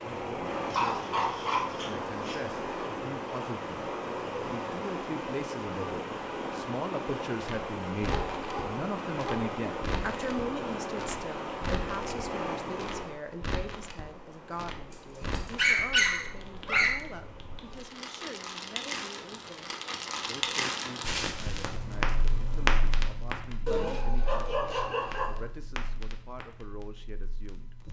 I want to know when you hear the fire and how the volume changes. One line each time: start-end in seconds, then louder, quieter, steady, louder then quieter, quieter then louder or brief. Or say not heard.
7.4-27.8 louder then quieter.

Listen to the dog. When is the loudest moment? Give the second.
16 s.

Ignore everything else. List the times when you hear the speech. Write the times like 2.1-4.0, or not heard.
0.0-27.8.